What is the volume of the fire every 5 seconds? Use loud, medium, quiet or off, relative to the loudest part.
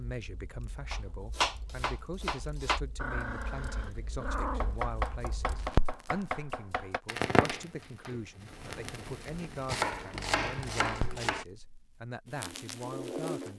quiet, loud, medium.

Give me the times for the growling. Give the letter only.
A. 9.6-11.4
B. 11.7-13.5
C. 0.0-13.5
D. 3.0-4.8
D.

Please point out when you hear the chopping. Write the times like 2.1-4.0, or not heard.
0.9-2.8, 4.6-7.0, 9.7-11.4.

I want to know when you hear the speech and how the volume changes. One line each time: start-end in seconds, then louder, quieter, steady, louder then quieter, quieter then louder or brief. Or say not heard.
0.0-13.5 steady.